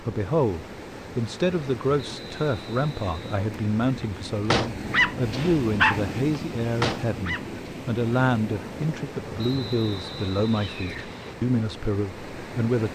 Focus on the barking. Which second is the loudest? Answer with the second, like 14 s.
6 s.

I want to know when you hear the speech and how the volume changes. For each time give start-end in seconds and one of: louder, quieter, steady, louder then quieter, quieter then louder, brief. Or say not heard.
0.0-12.9 steady.